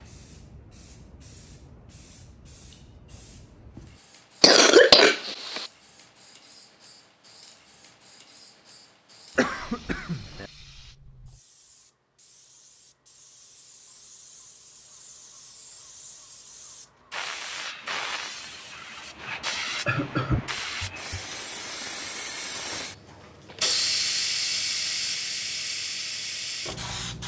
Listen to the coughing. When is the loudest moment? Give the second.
5 s.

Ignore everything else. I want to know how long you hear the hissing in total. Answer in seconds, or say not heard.
27 s.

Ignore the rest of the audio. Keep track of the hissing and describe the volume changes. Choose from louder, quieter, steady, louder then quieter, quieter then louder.
louder.